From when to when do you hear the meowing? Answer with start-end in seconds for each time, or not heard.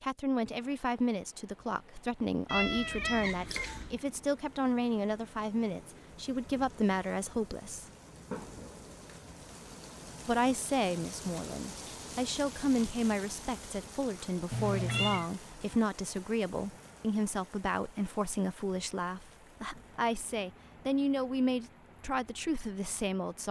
2.5-4.0, 14.5-15.2.